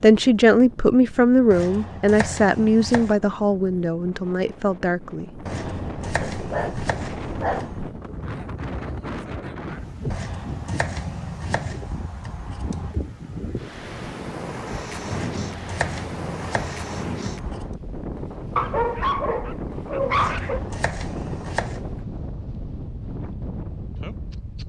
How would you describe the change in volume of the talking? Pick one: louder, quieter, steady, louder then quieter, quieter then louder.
quieter.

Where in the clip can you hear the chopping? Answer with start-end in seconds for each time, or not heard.
1.5-3.2, 5.5-7.8, 10.1-12.9, 15.1-17.8, 20.1-21.8.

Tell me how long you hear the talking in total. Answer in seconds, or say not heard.
5 s.